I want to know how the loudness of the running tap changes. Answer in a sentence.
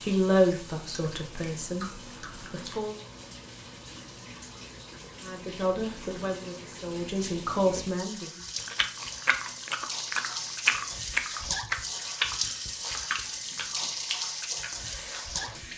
The loudness of the running tap goes up.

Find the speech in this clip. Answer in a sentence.
You can hear the speech from 0.0 to 3.0 s and from 5.2 to 8.4 s.